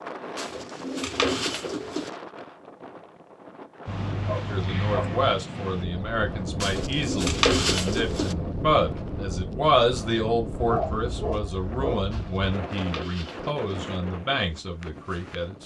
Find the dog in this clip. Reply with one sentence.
You can hear the dog from 3.9 to 5.2 s and from 10.6 to 12.4 s.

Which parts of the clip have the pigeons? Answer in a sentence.
You can hear the pigeons from 0.3 to 2.1 s, from 6.6 to 8.3 s and from 12.1 to 13.8 s.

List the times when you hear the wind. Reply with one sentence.
You can hear the wind from 0.0 to 15.6 s.